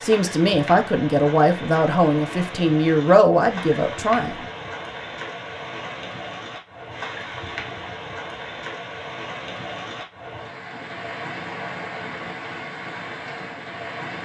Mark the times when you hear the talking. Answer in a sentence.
You can hear the talking from 0.0 to 4.3 s.